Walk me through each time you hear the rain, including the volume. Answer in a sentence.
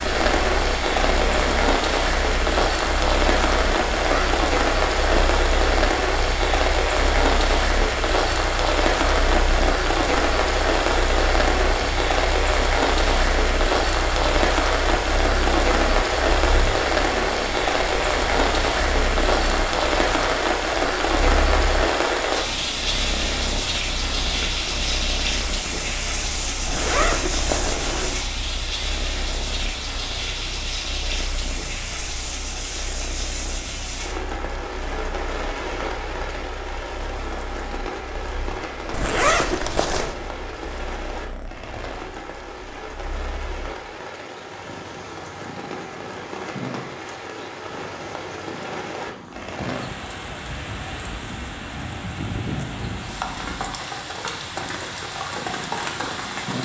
You can hear the rain from 0.0 to 56.5 s, getting quieter.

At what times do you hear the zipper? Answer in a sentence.
The zipper can be heard from 4.0 to 4.5 s, from 26.6 to 28.2 s and from 38.9 to 40.1 s.